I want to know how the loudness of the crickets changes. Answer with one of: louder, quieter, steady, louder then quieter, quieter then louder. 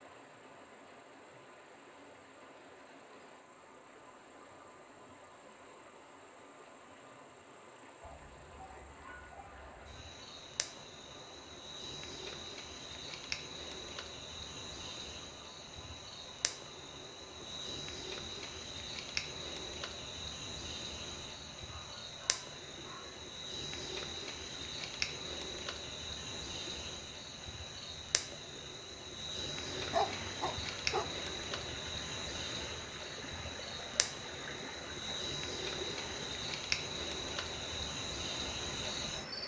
louder.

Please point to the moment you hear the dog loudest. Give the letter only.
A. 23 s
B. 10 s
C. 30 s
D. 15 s
C.